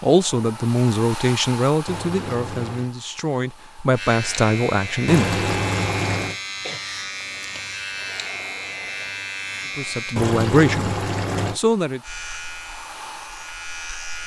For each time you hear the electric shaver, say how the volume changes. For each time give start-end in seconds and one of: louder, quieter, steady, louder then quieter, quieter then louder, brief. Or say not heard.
3.9-10.2 steady
12.0-14.2 brief.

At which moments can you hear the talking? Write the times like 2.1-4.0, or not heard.
0.0-5.3, 9.8-12.0.